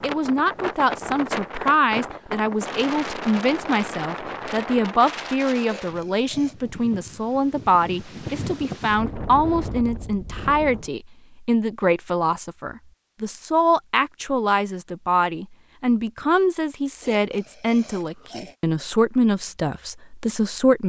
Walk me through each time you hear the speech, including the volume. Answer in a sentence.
The speech can be heard from 0.0 to 20.8 s, at a steady volume.